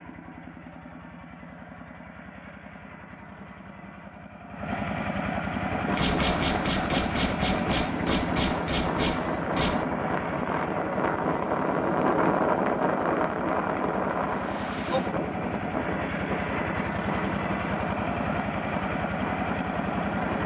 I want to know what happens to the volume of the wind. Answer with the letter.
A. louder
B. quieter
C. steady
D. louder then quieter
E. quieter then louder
D.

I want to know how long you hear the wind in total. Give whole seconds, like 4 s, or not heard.
15 s.